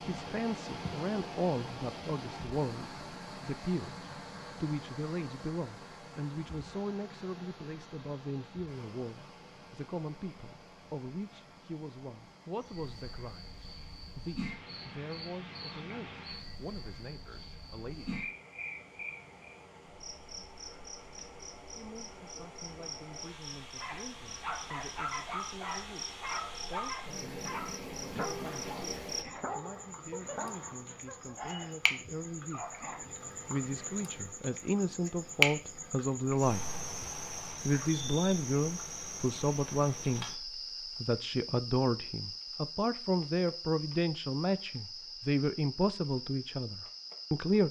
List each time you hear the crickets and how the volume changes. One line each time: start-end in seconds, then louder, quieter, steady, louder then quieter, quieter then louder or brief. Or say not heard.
12.6-47.6 louder then quieter.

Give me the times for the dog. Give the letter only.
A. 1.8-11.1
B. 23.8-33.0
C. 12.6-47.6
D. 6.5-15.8
B.